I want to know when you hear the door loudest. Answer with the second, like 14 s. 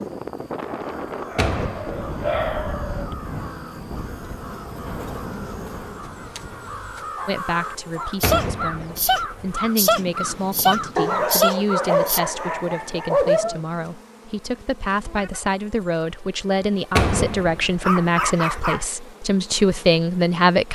17 s.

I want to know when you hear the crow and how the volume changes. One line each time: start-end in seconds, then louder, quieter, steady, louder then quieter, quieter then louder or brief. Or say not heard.
0.8-12.2 louder.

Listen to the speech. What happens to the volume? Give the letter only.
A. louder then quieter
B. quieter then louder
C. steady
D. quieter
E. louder
E.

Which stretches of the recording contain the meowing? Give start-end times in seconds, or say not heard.
not heard.